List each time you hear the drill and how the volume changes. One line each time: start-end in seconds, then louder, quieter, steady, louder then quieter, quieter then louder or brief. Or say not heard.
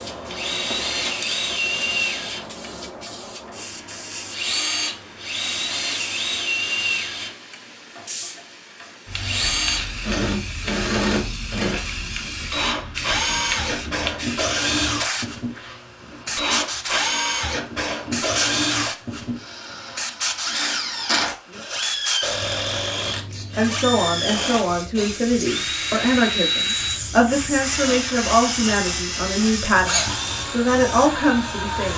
0.2-31.9 steady.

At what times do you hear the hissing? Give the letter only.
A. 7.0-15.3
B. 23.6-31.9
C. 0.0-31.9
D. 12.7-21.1
C.